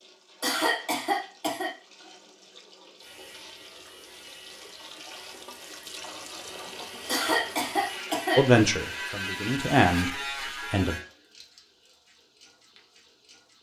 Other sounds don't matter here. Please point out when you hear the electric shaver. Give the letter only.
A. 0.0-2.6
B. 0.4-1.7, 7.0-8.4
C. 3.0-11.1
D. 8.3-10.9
C.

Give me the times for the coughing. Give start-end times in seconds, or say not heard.
0.4-1.7, 7.0-8.4.